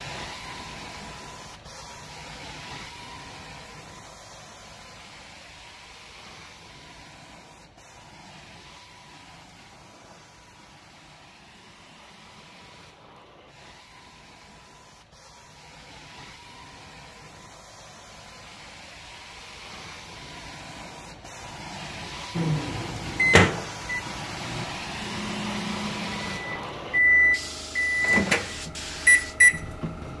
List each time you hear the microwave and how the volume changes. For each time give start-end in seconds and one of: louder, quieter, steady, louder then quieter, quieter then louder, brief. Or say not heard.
22.4-30.1 quieter then louder.